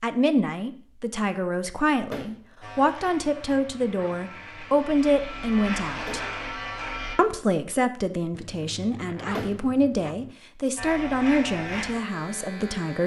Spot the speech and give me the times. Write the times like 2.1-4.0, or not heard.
0.0-6.2, 7.2-13.0.